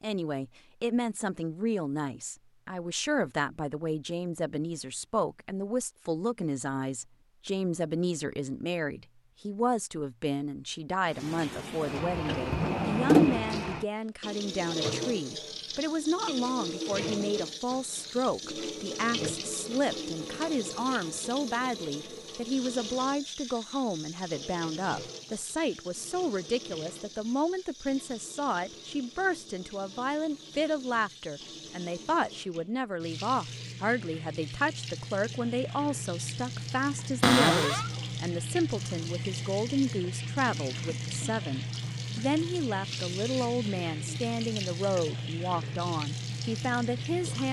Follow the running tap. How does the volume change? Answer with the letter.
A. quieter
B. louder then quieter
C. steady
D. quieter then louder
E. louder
D.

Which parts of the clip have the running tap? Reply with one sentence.
You can hear the running tap from 11.1 to 47.4 s.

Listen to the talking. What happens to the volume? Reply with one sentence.
The volume of the talking stays about the same.